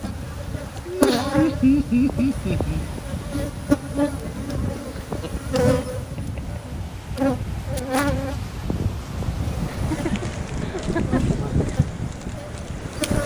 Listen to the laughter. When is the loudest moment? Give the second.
2 s.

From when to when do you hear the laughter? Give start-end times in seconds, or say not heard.
0.8-2.9, 4.8-6.6, 9.7-11.3.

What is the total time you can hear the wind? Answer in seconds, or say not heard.
13 s.